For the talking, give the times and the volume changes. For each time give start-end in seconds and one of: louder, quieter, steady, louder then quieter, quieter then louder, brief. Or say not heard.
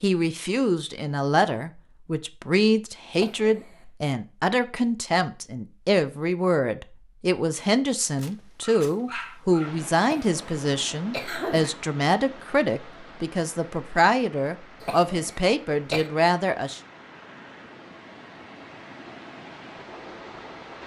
0.0-16.8 steady.